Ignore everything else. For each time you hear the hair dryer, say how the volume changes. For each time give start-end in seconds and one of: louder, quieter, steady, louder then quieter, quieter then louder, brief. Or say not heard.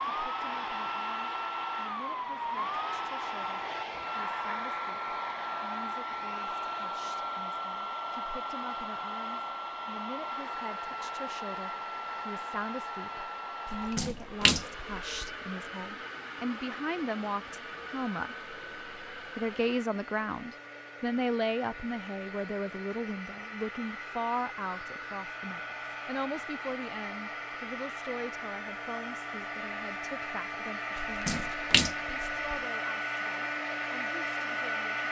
0.0-35.0 quieter then louder.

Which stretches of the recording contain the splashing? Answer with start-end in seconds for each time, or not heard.
13.7-15.2, 31.0-32.5.